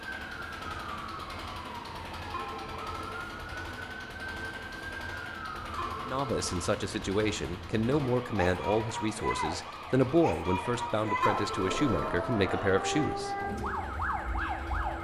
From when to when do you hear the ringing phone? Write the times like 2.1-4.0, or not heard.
2.3-3.2, 5.8-6.7, 11.2-12.1.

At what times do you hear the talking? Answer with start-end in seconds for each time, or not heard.
6.0-13.4.